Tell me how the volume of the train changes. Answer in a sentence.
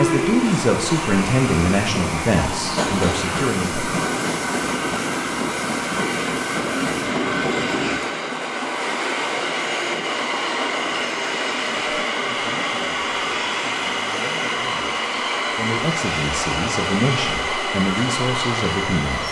The loudness of the train stays about the same.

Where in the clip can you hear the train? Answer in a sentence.
You can hear the train from 0.0 to 19.2 s.